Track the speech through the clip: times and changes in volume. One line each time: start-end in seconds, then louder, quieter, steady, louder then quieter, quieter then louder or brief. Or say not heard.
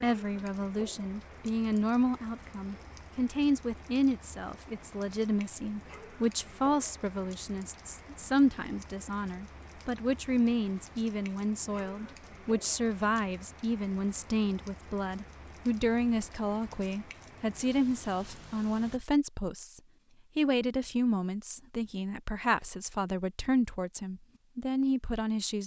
0.0-25.6 steady.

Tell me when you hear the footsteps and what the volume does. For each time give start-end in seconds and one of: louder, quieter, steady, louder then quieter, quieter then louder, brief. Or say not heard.
not heard.